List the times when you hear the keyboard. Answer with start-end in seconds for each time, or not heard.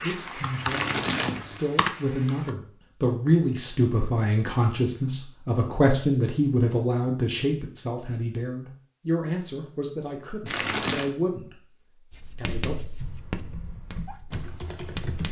0.0-2.5, 12.9-15.2.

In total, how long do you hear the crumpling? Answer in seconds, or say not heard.
2 s.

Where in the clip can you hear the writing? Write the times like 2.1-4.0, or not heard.
12.1-15.2.